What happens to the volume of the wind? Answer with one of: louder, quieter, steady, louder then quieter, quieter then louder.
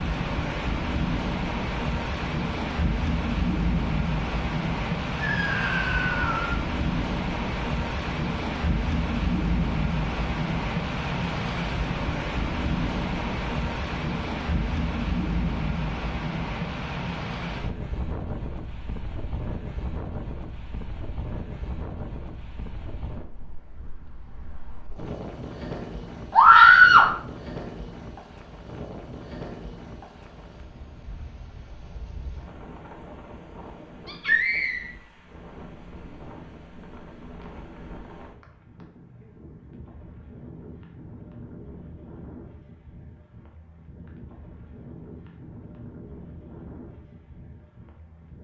quieter.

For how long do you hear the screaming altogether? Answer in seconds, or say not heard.
3 s.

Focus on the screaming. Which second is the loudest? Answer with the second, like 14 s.
27 s.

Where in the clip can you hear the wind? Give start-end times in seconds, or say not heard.
0.0-48.3.